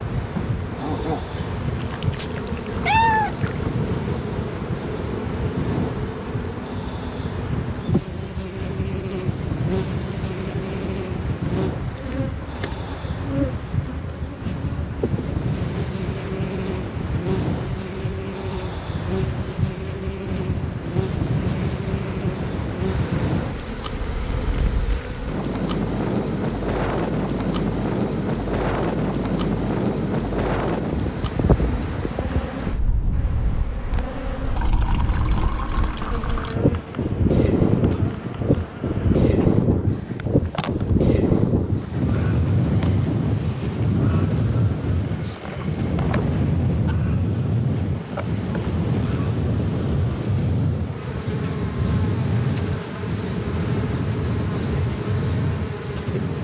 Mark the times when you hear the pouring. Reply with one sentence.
You can hear the pouring from 1.8 to 3.7 s and from 34.5 to 36.6 s.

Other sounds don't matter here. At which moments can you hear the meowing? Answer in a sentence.
You can hear the meowing from 2.1 to 3.7 s.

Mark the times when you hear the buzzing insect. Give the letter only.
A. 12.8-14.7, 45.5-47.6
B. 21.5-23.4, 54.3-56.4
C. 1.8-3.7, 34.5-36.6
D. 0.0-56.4
D.